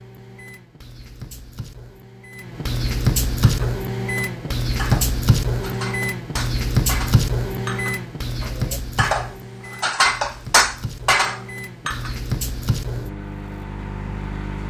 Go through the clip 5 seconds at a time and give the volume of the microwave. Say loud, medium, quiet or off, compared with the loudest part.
loud, loud, medium.